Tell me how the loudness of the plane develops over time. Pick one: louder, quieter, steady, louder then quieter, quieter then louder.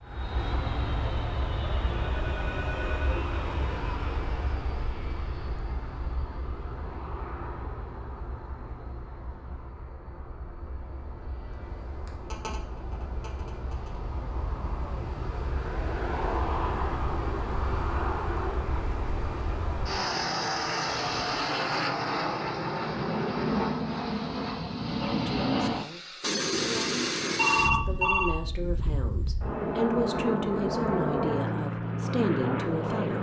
quieter then louder.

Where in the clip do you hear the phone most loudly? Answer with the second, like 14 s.
28 s.